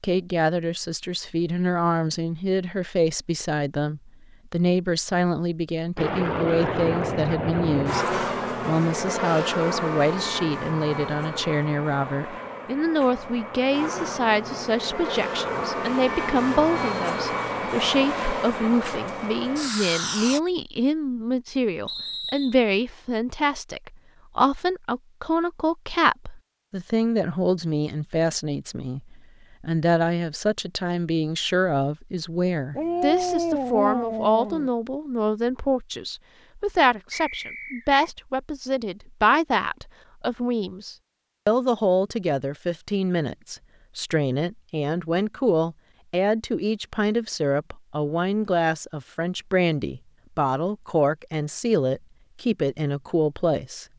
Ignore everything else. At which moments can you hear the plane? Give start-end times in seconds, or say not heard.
6.0-20.4.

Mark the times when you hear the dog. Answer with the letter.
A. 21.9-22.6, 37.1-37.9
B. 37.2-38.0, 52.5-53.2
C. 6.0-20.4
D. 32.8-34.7
D.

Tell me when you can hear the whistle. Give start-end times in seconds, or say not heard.
21.9-22.6, 37.1-37.9.